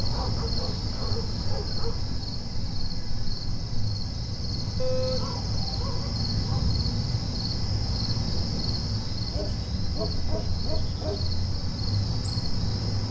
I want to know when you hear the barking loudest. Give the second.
5 s.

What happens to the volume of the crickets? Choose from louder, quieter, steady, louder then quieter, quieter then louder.
steady.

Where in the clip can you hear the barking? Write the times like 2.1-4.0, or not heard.
0.1-2.2, 4.8-6.7, 9.3-11.2.